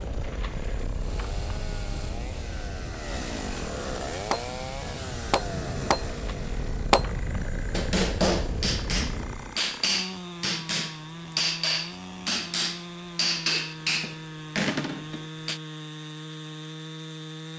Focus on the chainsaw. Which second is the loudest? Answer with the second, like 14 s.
4 s.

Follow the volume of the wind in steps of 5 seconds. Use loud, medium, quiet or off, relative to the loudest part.
loud, loud, off, off.